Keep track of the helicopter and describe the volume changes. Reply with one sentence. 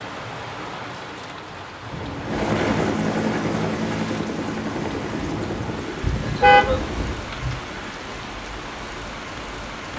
The loudness of the helicopter goes down.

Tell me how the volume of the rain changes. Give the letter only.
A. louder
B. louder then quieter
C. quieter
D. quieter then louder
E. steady
E.